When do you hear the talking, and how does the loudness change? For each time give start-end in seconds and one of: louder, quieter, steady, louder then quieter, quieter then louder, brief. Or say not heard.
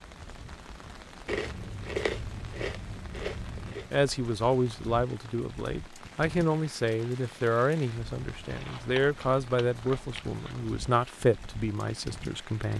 3.9-12.7 steady.